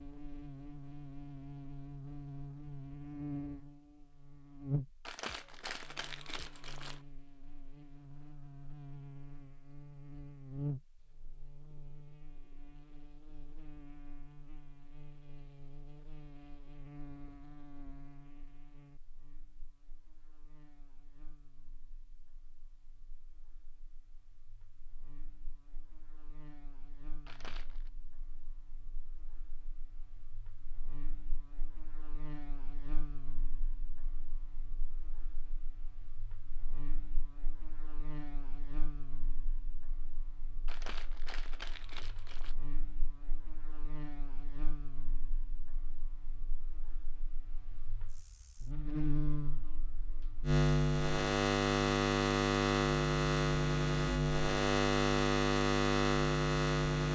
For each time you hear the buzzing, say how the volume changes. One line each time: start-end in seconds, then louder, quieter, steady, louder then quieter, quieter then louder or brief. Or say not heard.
0.0-57.1 quieter then louder.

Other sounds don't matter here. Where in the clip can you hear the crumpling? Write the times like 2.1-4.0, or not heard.
5.0-7.0, 27.2-27.9, 40.6-42.5.